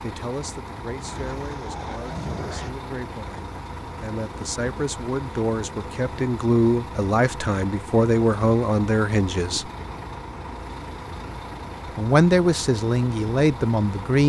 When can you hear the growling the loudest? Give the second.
2 s.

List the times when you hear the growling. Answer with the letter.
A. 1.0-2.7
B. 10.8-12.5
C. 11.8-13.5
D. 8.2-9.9
A.